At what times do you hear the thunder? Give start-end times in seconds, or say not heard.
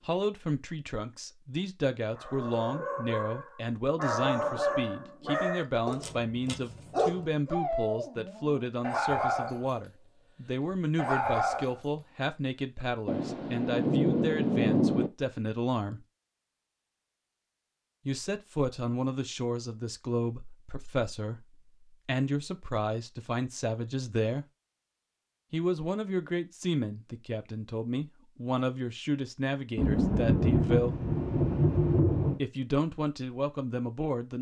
13.1-15.1, 29.8-32.4.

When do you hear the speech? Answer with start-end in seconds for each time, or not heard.
0.1-16.1, 18.1-24.4, 25.5-30.9, 32.4-34.3.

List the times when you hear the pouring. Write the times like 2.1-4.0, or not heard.
not heard.